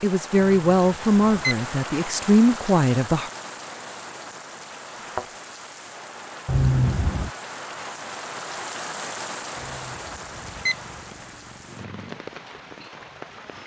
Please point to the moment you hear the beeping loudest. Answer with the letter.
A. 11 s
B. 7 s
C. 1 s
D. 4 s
B.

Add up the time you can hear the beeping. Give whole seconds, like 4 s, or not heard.
3 s.